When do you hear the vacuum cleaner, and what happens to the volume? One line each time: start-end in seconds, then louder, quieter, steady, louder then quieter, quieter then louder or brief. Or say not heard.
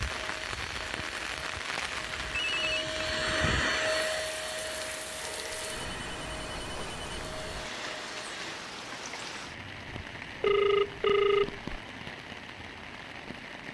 0.0-8.6 louder then quieter.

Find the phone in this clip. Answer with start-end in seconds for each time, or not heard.
2.0-3.0, 5.2-7.1, 9.8-11.8.